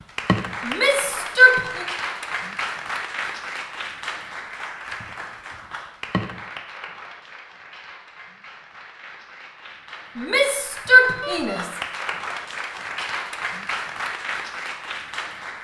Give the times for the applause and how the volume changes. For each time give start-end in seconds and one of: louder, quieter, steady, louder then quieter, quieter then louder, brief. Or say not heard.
0.0-15.5 quieter then louder.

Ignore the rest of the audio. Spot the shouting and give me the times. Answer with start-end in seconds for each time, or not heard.
0.7-1.9, 10.2-11.7.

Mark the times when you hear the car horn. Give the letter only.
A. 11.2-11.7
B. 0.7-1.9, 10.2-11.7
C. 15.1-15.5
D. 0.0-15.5
A.